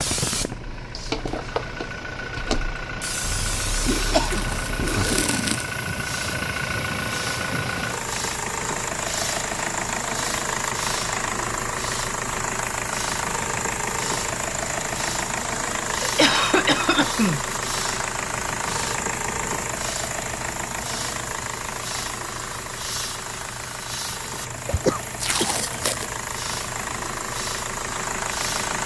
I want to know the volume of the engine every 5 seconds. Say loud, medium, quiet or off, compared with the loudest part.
medium, loud, loud, loud, medium, loud.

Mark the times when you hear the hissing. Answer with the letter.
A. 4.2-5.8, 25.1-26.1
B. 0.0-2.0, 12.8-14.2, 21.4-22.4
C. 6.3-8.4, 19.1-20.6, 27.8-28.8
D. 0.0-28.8
D.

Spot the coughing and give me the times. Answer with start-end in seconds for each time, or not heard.
3.2-5.2, 16.0-17.4, 24.6-25.6.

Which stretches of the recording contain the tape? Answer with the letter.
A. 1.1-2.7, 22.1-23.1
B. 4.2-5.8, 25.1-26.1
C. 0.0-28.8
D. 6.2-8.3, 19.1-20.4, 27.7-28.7
B.